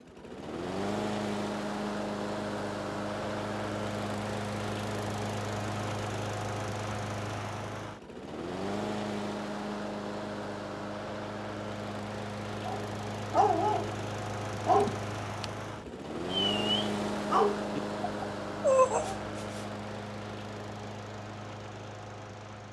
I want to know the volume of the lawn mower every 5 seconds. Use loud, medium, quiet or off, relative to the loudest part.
loud, loud, loud, loud, medium.